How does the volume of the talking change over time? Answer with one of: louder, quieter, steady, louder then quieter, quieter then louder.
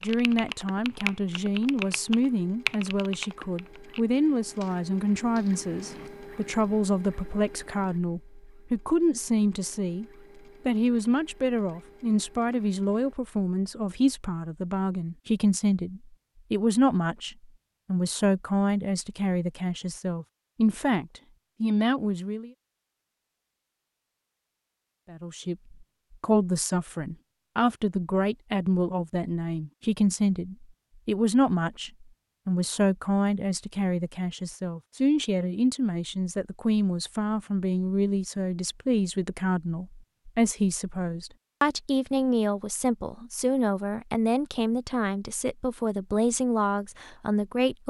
steady.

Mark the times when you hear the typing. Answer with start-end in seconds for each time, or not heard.
0.0-6.1.